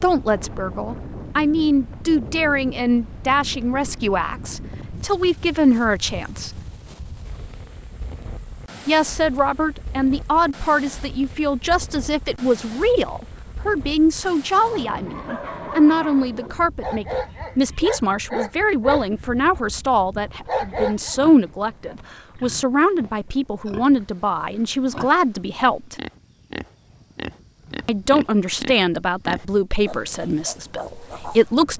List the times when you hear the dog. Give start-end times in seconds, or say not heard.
14.6-21.1.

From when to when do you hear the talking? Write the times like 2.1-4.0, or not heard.
0.0-6.6, 8.8-25.9, 27.9-31.7.